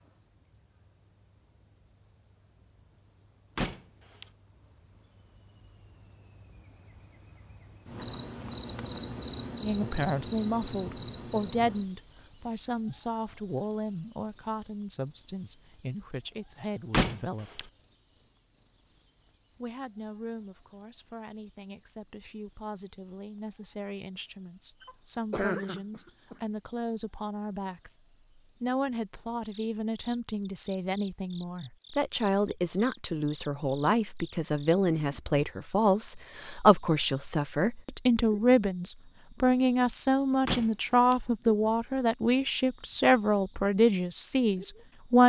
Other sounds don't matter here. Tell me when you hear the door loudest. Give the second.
17 s.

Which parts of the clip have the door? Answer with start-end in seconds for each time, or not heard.
3.5-4.2, 16.9-17.6, 40.5-41.1.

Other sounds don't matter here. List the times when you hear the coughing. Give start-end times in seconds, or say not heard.
24.8-26.4.